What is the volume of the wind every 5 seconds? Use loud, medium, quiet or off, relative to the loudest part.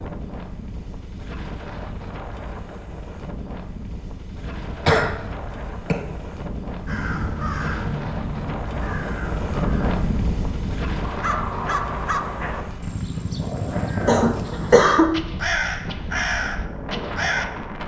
medium, loud, loud, loud.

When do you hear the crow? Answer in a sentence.
You can hear the crow from 6.8 to 17.4 s.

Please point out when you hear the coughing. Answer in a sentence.
The coughing can be heard from 4.7 to 6.0 s and from 14.0 to 15.1 s.